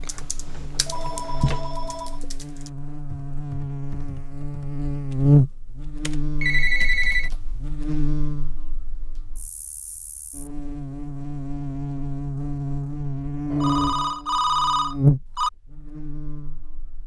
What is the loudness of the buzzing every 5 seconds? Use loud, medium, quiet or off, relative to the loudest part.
medium, loud, medium, loud.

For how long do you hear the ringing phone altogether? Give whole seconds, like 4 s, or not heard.
5 s.